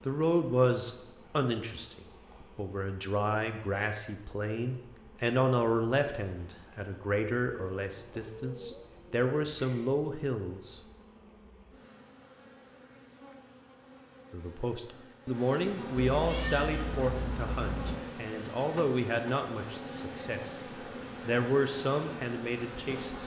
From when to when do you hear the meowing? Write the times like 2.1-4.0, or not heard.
15.9-18.0.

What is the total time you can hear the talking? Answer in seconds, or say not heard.
19 s.